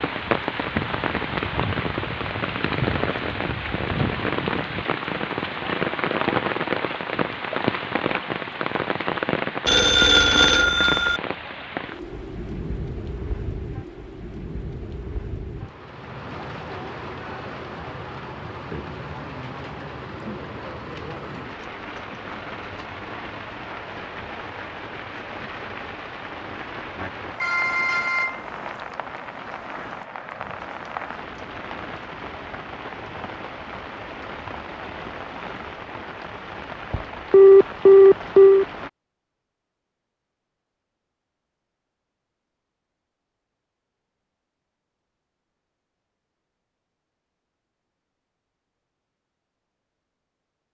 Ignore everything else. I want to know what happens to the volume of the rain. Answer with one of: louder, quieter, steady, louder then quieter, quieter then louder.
quieter.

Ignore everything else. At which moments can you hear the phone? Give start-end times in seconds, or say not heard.
9.7-11.2, 27.4-28.4, 37.3-38.6.